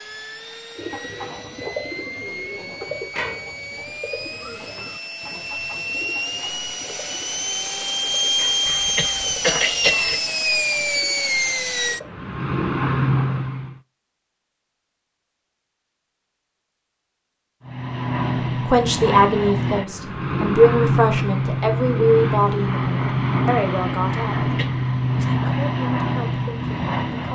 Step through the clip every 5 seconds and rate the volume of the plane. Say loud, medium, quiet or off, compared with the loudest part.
quiet, loud, loud, loud, loud, loud.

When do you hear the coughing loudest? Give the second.
10 s.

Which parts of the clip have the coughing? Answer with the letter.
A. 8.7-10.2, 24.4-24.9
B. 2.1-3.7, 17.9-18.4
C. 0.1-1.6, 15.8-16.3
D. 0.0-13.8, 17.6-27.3
A.